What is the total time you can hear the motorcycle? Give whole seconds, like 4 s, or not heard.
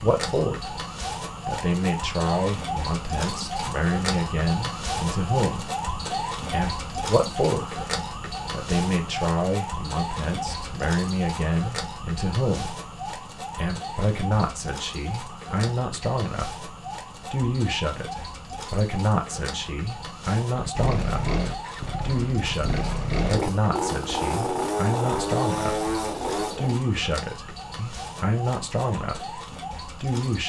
6 s.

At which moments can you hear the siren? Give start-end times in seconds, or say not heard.
0.0-30.4.